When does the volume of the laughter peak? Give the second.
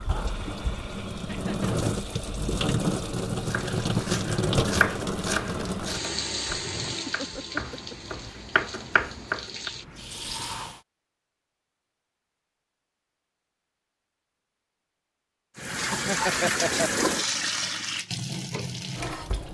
16 s.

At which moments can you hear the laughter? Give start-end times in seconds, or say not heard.
1.2-1.9, 6.6-8.2, 15.9-17.1.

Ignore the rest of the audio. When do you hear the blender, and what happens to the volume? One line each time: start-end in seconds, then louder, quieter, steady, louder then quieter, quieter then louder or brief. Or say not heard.
not heard.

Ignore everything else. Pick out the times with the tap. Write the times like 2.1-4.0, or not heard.
0.0-10.8, 15.6-19.4.